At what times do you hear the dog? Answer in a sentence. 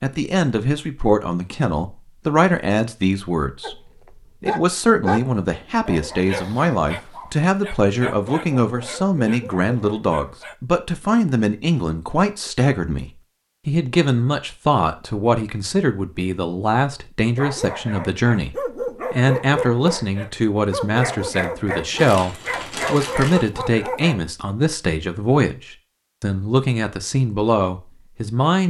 The dog can be heard from 3.6 to 10.6 s and from 17.4 to 24.2 s.